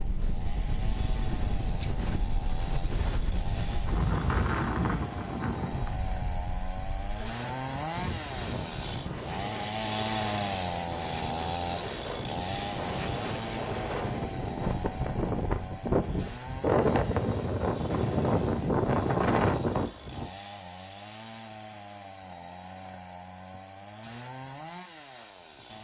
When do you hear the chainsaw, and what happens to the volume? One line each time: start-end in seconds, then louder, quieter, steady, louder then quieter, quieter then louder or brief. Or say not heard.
0.0-25.7 louder then quieter.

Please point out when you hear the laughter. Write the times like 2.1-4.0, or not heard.
not heard.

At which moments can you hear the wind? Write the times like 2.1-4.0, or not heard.
0.0-20.3.